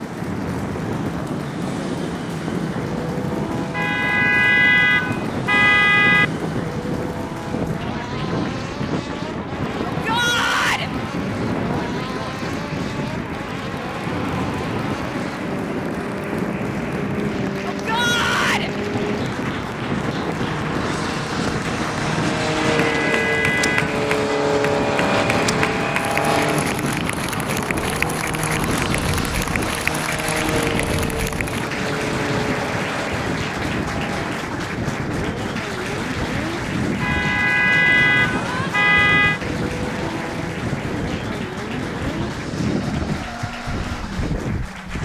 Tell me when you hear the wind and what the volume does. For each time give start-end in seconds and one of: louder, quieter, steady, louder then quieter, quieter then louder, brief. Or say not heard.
0.0-44.9 steady.